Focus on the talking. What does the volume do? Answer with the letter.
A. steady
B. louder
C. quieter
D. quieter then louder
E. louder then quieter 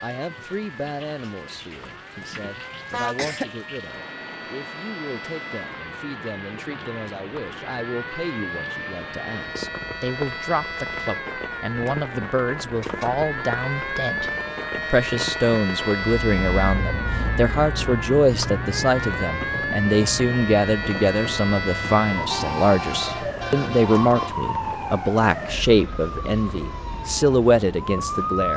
B.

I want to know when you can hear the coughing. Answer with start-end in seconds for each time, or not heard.
2.7-3.5.